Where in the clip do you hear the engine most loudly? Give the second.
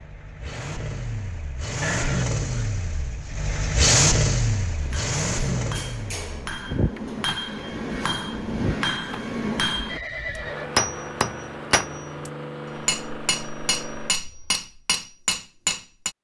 4 s.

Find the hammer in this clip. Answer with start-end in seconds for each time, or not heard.
4.8-16.1.